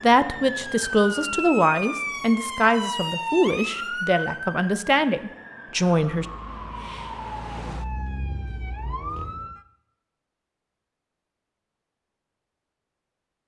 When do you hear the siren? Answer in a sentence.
You can hear the siren from 0.0 to 9.6 s.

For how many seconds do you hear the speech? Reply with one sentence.
The speech can be heard for 6 seconds in total.